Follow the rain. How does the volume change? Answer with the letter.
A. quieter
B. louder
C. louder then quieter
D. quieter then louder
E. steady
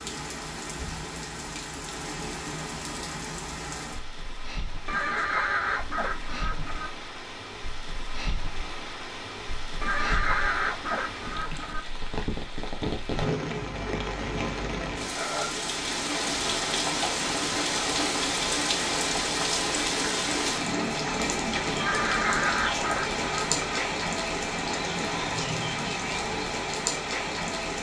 B.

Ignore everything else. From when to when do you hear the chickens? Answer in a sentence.
The chickens can be heard from 4.8 to 6.9 s, from 9.8 to 11.8 s and from 21.8 to 23.8 s.